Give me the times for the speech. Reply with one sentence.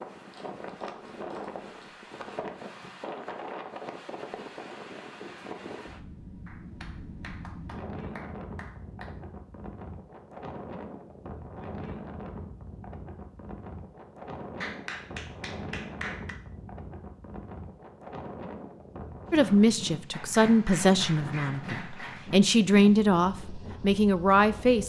You can hear the speech from 19.3 to 24.8 s.